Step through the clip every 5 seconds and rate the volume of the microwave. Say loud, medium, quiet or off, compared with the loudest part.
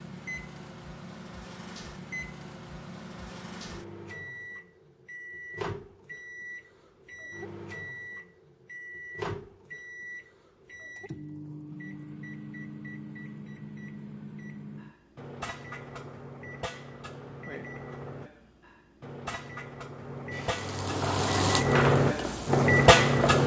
quiet, quiet, quiet, quiet, loud.